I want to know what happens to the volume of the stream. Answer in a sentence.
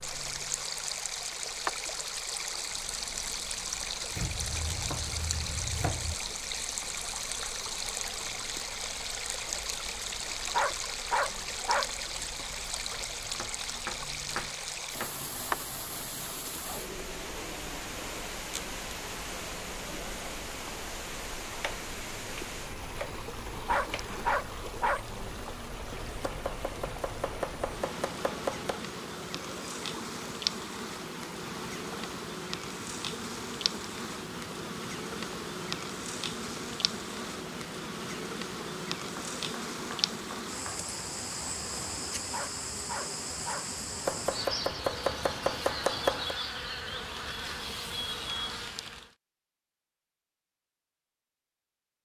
The loudness of the stream goes down.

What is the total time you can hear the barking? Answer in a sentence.
You can hear the barking for 4 seconds altogether.